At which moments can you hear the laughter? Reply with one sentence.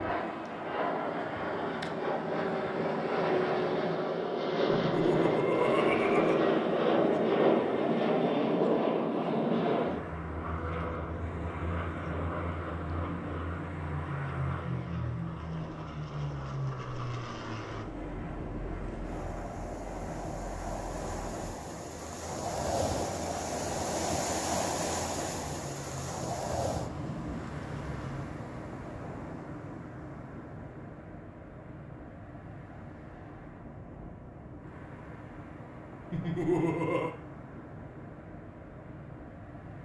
You can hear the laughter from 4.7 to 6.4 s and from 36.1 to 37.1 s.